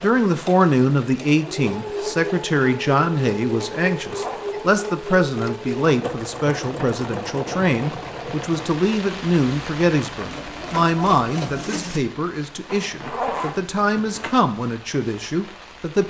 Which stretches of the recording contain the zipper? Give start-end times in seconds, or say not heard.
4.0-4.5, 12.7-14.3.